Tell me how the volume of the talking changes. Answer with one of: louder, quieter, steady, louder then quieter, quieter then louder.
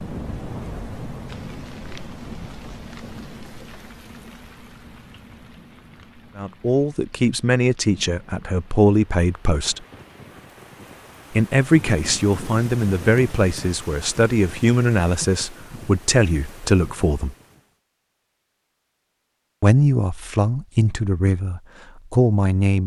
steady.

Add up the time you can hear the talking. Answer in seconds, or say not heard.
13 s.